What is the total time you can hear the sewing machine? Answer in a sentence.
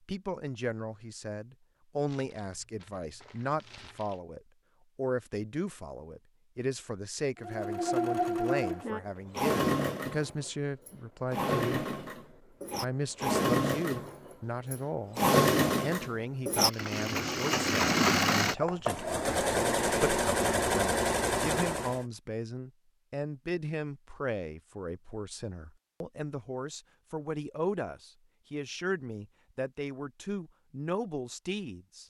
The sewing machine can be heard for 15 seconds in total.